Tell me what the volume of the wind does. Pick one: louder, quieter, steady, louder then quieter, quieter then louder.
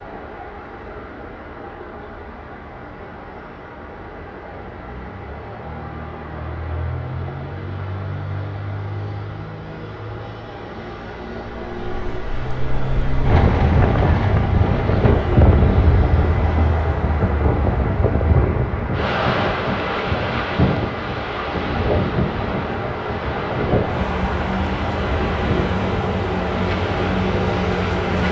quieter.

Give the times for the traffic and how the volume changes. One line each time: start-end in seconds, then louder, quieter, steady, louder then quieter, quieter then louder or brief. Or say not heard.
0.0-28.2 louder.